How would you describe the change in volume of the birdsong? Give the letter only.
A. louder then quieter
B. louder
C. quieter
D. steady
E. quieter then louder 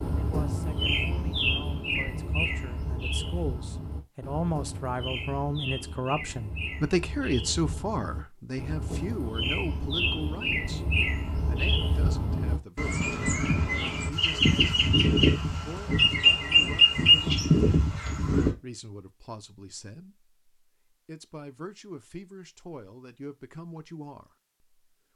E.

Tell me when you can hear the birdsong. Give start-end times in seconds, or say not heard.
0.0-18.5.